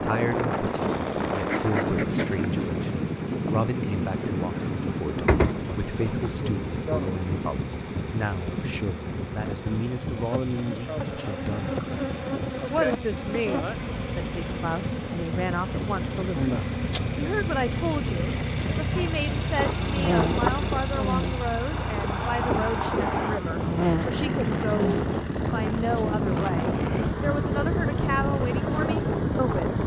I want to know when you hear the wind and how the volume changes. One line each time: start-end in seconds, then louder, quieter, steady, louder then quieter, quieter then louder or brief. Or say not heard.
0.0-29.8 quieter then louder.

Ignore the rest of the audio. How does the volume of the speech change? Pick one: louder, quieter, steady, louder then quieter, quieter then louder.
steady.